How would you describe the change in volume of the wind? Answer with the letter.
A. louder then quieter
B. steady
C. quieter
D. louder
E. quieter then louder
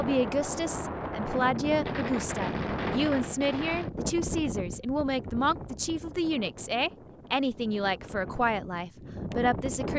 E.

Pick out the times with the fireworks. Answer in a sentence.
The fireworks can be heard from 1.8 to 3.9 s.